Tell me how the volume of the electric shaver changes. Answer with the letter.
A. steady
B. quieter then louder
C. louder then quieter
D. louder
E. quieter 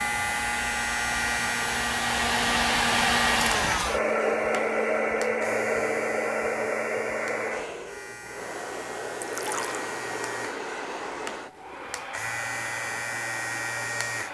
B.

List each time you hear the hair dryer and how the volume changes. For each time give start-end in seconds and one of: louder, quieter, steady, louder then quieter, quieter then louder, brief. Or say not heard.
0.0-14.3 quieter.